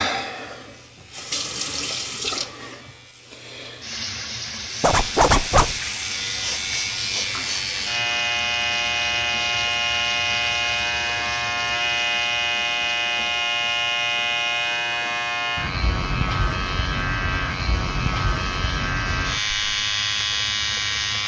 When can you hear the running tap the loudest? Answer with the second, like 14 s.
2 s.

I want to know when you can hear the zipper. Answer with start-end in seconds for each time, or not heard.
4.8-5.8.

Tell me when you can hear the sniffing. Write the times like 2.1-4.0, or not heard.
6.3-7.9.